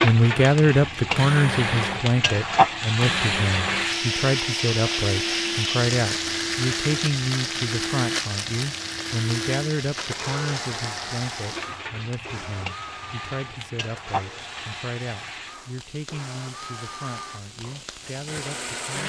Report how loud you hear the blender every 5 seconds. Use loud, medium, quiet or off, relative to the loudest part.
loud, loud, medium, medium.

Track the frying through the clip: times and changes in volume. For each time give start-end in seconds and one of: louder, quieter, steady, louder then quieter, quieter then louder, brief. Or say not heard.
0.0-19.0 quieter.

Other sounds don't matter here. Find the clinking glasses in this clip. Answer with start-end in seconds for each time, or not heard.
not heard.